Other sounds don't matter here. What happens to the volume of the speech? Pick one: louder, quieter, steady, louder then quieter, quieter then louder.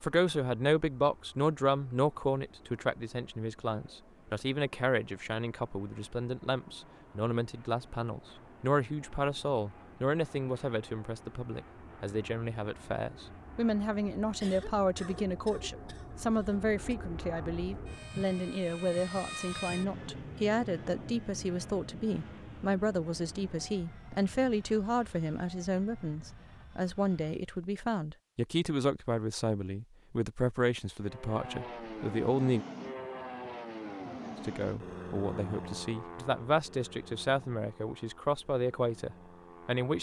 steady.